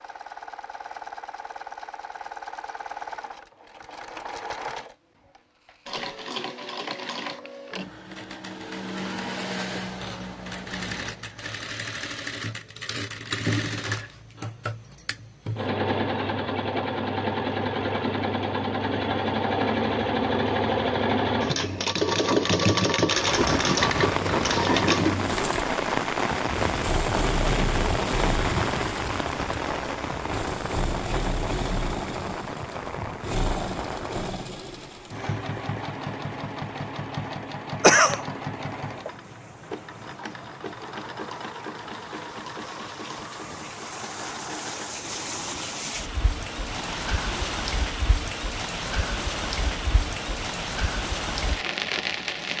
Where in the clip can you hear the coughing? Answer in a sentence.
The coughing can be heard from 37.8 to 38.2 s.